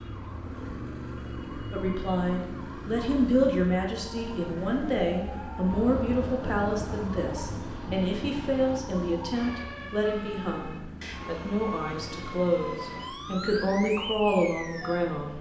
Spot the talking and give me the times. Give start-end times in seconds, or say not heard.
1.7-15.3.